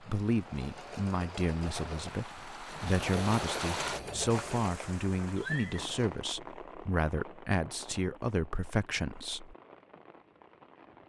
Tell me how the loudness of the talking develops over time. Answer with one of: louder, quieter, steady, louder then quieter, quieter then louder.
steady.